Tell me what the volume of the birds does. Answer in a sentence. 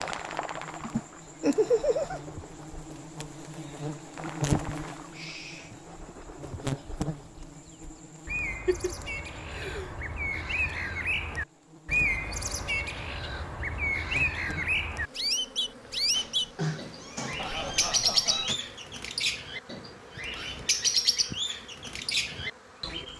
The loudness of the birds goes up.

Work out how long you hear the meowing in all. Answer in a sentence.
The meowing can be heard for 4 seconds in total.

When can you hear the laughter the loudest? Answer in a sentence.
The loudest moment of the laughter is at 2 seconds.